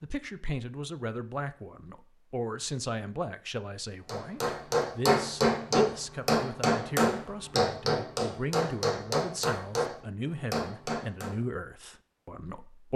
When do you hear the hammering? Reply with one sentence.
You can hear the hammering from 4.0 to 11.3 s.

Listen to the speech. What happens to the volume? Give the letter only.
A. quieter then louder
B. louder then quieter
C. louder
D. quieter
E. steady
E.